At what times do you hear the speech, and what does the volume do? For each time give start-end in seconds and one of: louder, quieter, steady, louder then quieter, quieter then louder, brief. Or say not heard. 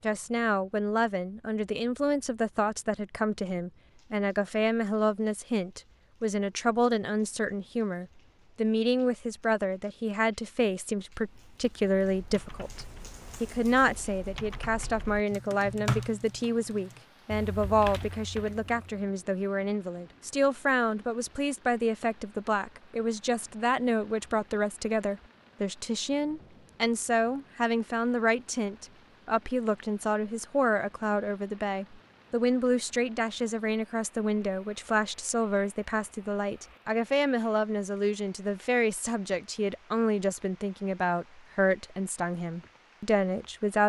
0.0-43.8 steady.